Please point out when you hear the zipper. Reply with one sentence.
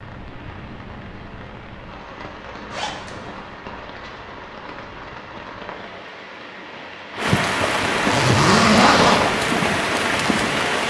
You can hear the zipper from 2.7 to 3.5 s and from 8.0 to 9.3 s.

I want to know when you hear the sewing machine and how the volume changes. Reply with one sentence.
You can't hear the sewing machine here.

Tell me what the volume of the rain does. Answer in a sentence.
The loudness of the rain goes up.